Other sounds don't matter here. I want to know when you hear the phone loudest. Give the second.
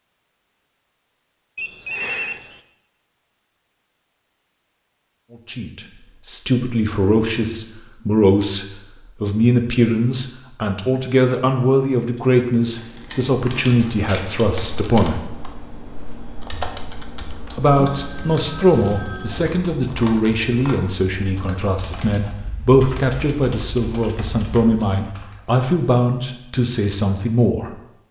2 s.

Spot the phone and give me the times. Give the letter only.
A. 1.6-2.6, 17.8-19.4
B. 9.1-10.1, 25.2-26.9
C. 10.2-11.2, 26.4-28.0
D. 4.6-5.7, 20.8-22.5
A.